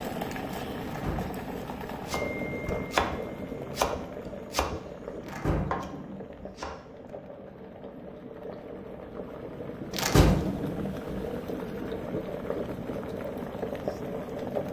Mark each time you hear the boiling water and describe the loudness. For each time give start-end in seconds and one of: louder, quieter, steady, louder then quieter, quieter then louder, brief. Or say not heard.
0.0-14.6 quieter then louder.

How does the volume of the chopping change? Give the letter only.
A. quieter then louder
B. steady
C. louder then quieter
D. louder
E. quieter
A.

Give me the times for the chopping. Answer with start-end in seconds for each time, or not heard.
2.0-6.8.